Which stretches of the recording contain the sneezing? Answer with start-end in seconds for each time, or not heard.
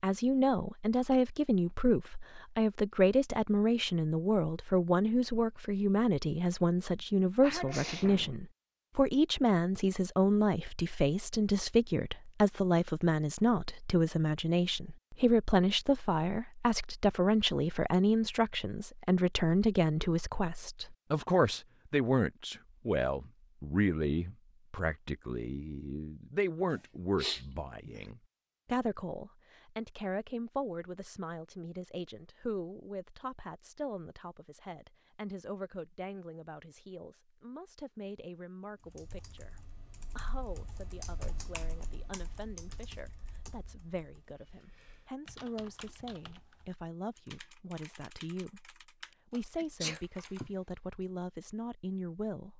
6.9-8.3, 26.7-28.0, 49.5-50.5.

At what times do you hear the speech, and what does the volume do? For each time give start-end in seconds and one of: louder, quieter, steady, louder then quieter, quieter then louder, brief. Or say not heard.
0.0-52.5 quieter.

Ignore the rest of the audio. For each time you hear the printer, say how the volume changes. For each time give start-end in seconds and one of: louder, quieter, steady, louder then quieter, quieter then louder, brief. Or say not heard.
not heard.